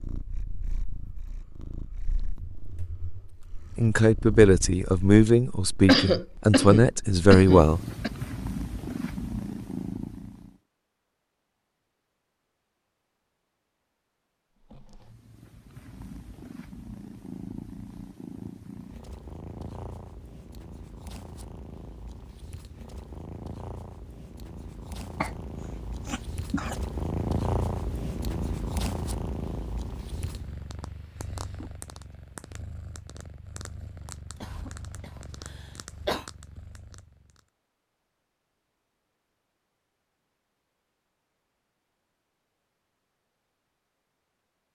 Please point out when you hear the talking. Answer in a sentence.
The talking can be heard from 3.8 to 7.8 s.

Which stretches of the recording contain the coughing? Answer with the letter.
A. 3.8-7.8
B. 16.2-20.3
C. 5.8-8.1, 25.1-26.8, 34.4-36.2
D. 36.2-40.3
C.